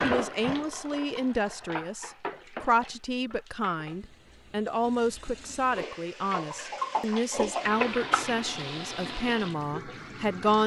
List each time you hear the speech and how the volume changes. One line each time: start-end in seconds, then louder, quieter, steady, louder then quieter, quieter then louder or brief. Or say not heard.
0.0-10.6 steady.